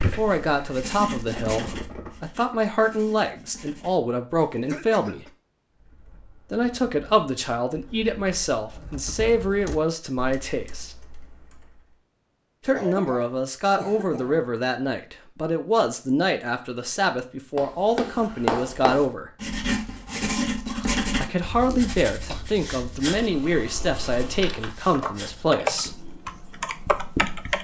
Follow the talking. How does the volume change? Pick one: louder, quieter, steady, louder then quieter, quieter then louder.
steady.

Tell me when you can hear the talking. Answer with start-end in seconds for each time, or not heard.
0.0-5.2, 6.5-10.9, 12.7-19.3, 21.2-25.9.